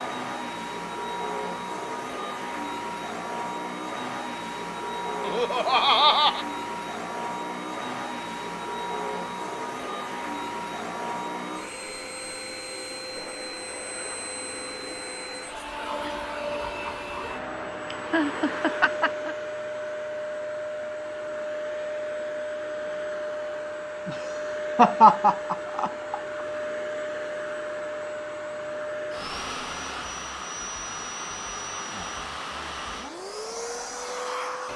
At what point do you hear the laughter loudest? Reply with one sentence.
The loudest moment of the laughter is at 25 seconds.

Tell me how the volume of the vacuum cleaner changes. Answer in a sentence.
The loudness of the vacuum cleaner stays about the same.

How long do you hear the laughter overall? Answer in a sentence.
The laughter can be heard for 5 seconds in total.